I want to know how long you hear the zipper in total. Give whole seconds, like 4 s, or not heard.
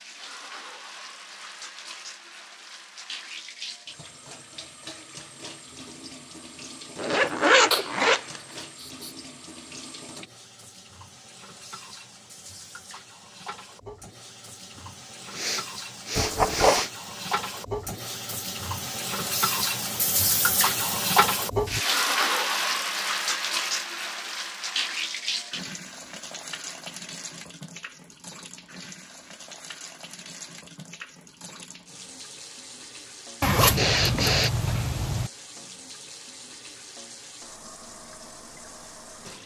4 s.